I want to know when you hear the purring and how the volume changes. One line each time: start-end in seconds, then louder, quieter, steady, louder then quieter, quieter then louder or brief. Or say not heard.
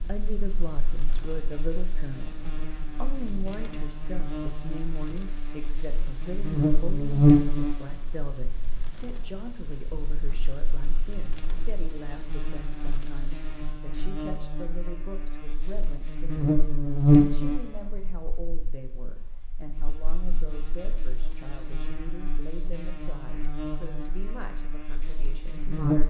not heard.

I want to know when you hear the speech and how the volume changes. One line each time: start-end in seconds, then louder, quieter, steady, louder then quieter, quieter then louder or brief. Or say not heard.
0.0-26.0 quieter.